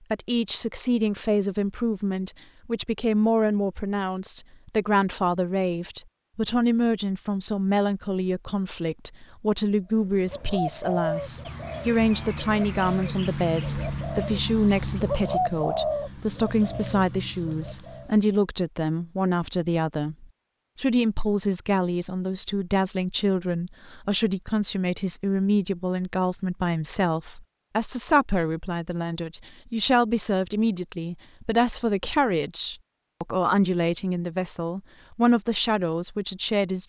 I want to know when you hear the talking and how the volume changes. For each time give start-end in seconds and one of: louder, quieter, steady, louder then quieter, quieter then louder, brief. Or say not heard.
0.1-36.8 steady.